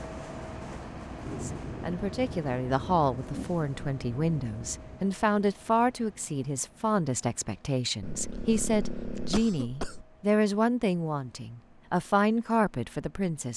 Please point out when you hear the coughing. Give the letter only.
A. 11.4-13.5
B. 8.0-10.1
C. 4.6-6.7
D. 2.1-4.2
B.